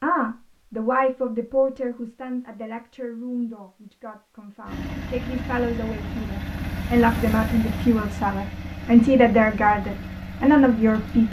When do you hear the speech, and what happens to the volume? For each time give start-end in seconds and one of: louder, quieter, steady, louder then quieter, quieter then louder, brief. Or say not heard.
0.0-11.2 quieter then louder.